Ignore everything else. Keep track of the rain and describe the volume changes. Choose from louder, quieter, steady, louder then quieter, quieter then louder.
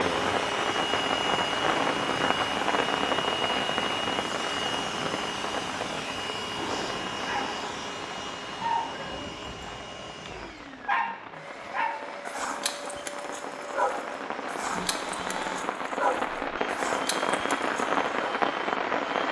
quieter then louder.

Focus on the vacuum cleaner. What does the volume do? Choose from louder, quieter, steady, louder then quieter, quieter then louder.
quieter.